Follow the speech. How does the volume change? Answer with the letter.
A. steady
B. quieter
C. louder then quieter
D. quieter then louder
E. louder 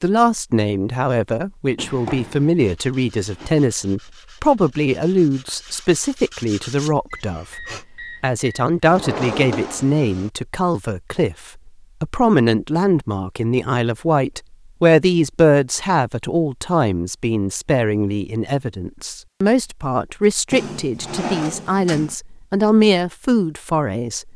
A.